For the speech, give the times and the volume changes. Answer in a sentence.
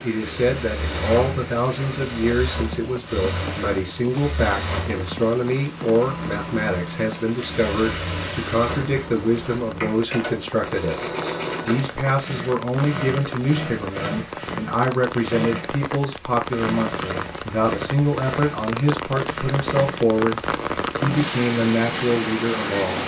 You can hear the speech from 0.0 to 23.0 s, at a steady volume.